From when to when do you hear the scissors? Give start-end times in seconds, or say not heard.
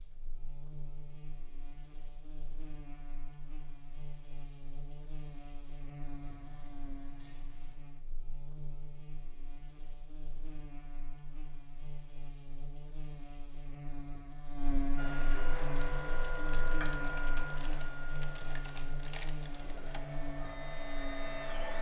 6.2-7.8.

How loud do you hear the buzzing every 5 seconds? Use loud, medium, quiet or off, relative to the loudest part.
medium, medium, loud, loud, loud.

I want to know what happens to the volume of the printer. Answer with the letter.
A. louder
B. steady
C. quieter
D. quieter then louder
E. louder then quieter
D.